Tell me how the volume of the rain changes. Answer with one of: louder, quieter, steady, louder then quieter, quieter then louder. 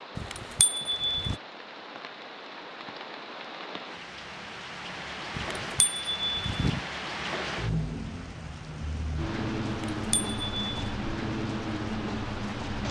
louder.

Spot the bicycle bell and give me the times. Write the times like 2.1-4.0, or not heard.
0.1-1.4, 5.3-6.8, 9.9-10.9.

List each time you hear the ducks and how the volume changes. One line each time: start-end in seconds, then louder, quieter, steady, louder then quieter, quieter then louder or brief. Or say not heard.
not heard.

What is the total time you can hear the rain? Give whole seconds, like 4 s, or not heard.
13 s.